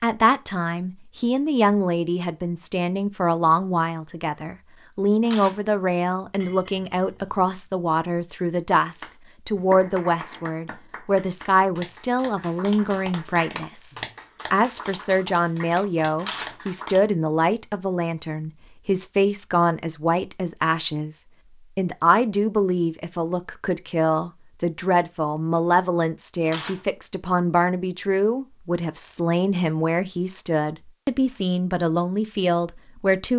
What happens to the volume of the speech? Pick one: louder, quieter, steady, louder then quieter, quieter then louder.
steady.